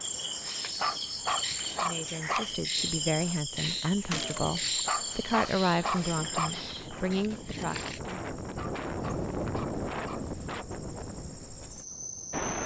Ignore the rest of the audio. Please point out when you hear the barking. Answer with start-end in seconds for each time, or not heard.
0.8-2.5, 4.8-6.5, 8.6-10.3.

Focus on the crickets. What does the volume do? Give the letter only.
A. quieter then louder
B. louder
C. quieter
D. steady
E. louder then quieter
C.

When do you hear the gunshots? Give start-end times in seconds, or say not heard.
4.1-4.6.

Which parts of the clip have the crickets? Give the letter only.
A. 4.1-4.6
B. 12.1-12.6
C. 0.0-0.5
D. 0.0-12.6
D.